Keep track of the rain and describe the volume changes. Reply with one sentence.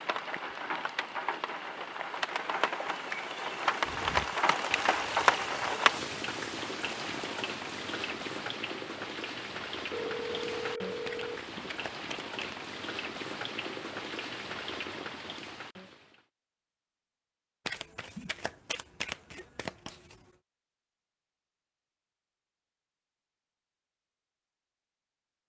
The loudness of the rain goes up, then down.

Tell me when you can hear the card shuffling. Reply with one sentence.
You can hear the card shuffling from 3.9 to 5.7 s, from 11.1 to 12.6 s and from 17.6 to 20.2 s.